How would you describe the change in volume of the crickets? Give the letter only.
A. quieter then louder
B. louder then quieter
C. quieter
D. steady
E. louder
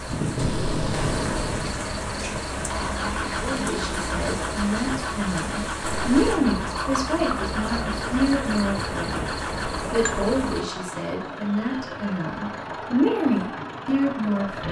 D.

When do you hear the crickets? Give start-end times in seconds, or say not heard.
0.0-10.7.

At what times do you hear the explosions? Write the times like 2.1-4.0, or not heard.
0.3-1.6.